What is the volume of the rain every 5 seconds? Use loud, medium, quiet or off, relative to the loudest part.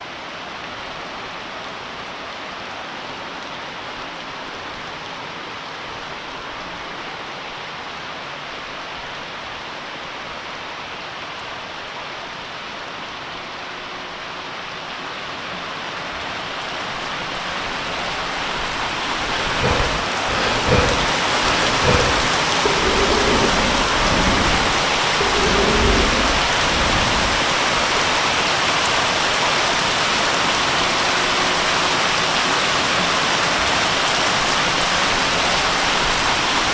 quiet, quiet, quiet, medium, loud, loud, loud, loud.